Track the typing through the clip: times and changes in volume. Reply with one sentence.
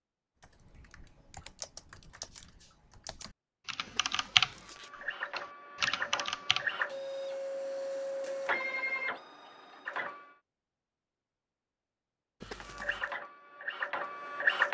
You can hear the typing from 0.4 to 6.7 s, getting louder then quieter.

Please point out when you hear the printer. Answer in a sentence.
The printer can be heard from 4.6 to 10.3 s and from 12.7 to 14.6 s.